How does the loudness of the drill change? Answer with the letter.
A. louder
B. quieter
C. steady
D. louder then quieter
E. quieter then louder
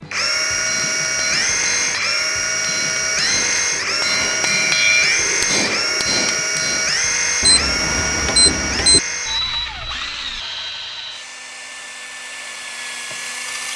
B.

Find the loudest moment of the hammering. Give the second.
5 s.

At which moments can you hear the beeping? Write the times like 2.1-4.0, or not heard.
7.4-9.0.